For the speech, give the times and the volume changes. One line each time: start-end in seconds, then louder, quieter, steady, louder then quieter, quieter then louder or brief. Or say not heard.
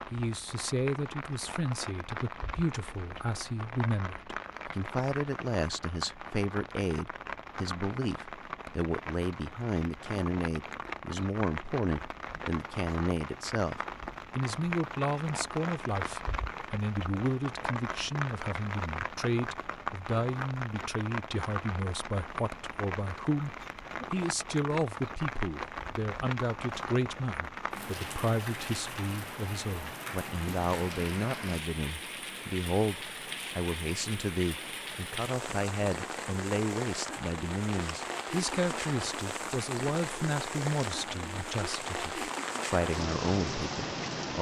0.1-44.3 steady.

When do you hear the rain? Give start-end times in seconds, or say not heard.
0.0-44.3.